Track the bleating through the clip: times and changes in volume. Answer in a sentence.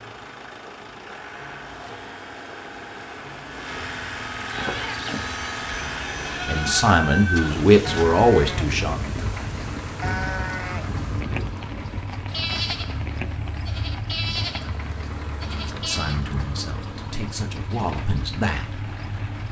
You can hear the bleating from 4.5 to 16.2 s, at a steady volume.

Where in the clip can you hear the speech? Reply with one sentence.
You can hear the speech from 6.5 to 9.0 s and from 15.7 to 18.9 s.